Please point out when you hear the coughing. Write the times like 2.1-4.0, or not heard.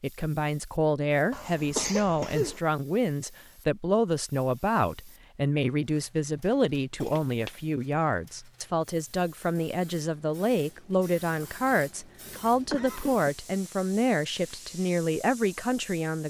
1.3-2.6, 7.0-7.6, 12.2-13.3.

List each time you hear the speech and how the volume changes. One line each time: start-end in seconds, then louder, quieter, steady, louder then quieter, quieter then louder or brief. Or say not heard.
0.0-16.2 steady.